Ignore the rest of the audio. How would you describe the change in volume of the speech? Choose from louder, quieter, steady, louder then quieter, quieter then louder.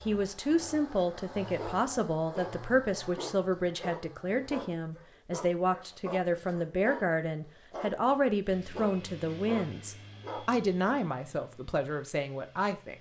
steady.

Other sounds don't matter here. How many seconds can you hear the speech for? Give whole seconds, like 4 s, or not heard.
13 s.